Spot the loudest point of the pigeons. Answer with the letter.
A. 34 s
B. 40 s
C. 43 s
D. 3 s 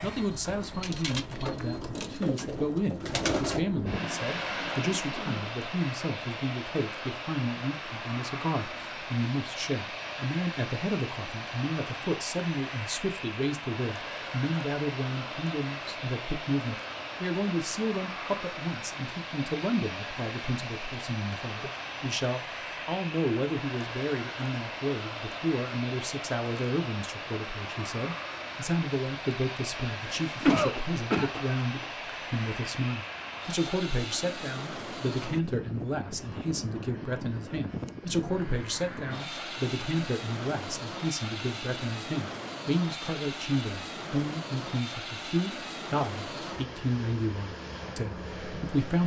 D.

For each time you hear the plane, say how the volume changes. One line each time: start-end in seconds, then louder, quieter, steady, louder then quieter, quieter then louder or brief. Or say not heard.
0.0-49.0 steady.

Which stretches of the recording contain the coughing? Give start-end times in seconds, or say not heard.
29.9-31.9.